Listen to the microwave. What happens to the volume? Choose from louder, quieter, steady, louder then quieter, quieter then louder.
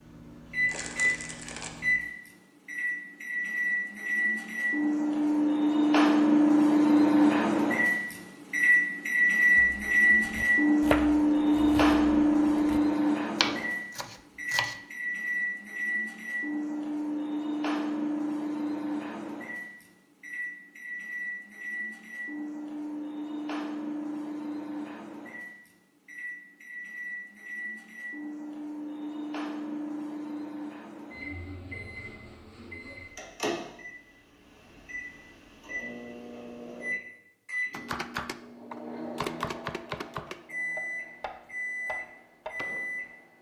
quieter.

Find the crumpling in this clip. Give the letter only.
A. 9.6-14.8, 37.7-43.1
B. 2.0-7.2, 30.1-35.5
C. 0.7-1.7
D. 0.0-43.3
C.